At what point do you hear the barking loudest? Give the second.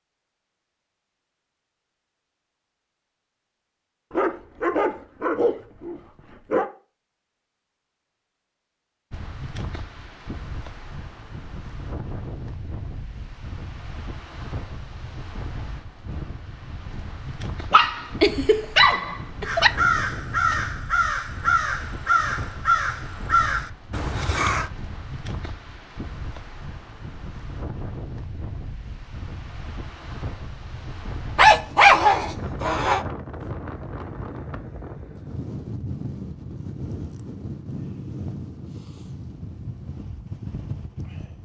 32 s.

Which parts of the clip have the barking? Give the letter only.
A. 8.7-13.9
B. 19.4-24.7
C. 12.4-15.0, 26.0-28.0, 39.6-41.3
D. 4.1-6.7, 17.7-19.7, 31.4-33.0
D.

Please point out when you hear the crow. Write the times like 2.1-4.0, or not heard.
19.4-24.7.